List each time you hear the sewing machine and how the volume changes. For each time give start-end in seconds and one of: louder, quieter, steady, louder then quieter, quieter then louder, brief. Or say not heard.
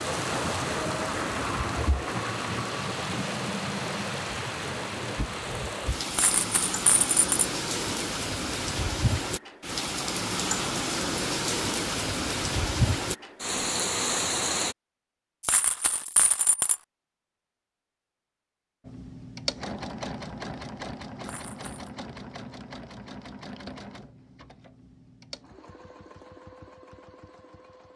18.9-27.9 quieter.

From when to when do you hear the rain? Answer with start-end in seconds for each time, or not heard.
0.0-14.8.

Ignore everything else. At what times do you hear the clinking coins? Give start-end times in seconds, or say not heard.
6.1-7.5, 15.4-16.8, 21.2-21.9.